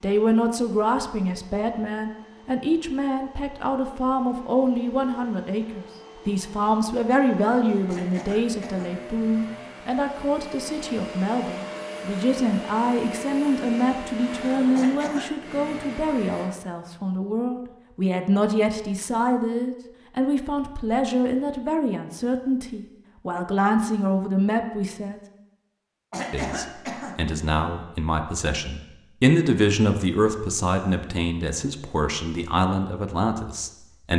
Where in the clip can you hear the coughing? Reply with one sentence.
You can hear the coughing from 7.8 to 8.9 s, from 14.7 to 15.2 s and from 26.1 to 27.1 s.